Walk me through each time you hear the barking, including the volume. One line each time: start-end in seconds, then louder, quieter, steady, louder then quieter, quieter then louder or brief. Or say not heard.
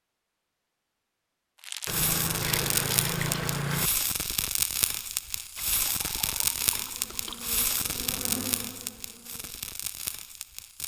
not heard.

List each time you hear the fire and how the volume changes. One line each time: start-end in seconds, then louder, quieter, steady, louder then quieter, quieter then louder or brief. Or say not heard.
1.6-10.8 quieter.